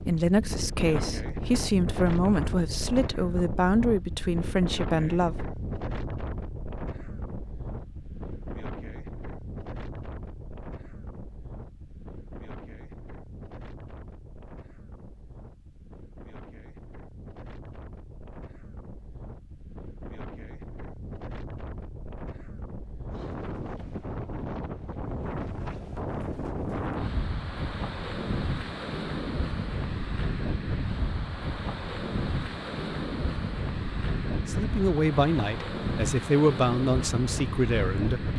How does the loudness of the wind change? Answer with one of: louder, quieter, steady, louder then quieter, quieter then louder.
quieter then louder.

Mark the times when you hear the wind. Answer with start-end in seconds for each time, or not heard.
0.0-38.3.